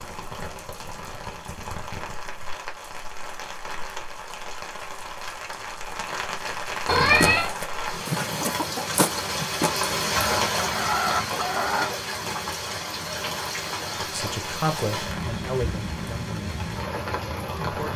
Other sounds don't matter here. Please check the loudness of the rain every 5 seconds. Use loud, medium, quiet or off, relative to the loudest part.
medium, loud, loud, loud.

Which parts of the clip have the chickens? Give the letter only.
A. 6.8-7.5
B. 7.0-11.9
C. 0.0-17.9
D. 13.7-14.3
B.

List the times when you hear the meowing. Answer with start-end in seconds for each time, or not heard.
6.8-7.5.